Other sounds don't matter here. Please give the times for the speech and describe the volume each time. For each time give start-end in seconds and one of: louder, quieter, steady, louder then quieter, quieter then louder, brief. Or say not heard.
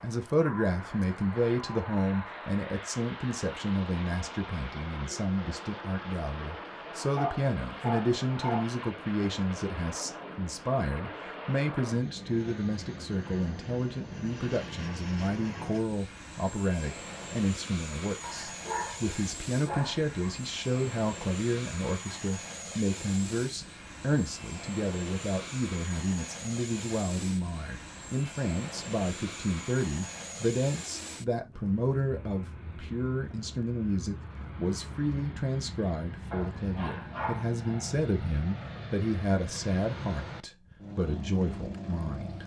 0.0-42.4 steady.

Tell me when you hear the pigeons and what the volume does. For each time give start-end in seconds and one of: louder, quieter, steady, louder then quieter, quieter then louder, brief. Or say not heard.
not heard.